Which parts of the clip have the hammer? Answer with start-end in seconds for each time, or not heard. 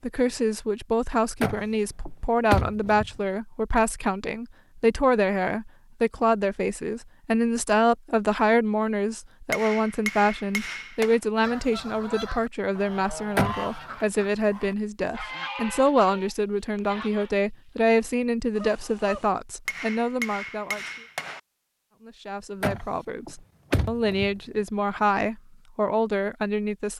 9.5-11.2, 19.6-21.4.